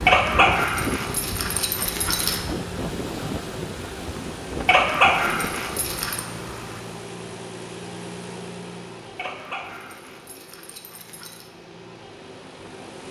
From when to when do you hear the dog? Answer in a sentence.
The dog can be heard from 0.1 to 2.4 s, from 4.7 to 6.2 s and from 9.2 to 11.5 s.